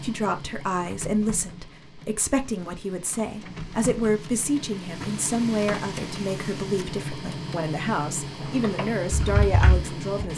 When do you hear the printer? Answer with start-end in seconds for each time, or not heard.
0.0-10.3.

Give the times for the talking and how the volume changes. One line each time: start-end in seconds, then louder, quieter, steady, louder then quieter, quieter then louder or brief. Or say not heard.
0.0-10.3 steady.